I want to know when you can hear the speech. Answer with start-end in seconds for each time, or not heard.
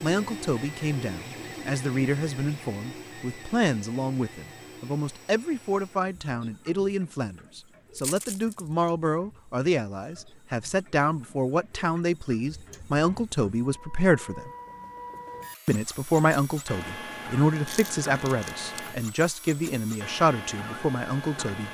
0.0-14.5, 15.7-21.6.